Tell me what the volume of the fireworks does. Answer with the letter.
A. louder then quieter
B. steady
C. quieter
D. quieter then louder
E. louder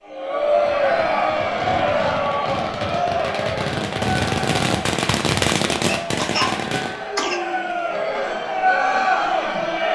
A.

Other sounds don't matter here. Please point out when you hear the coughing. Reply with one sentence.
You can hear the coughing from 5.8 to 7.4 s.